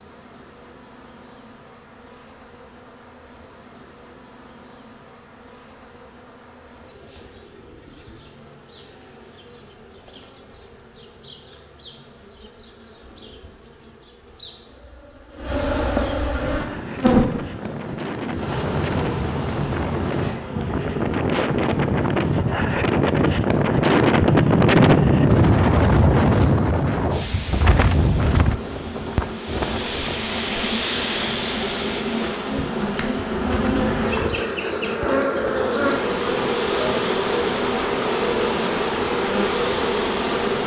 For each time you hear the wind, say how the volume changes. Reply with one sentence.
The wind can be heard from 16.4 to 40.6 s, getting louder then quieter.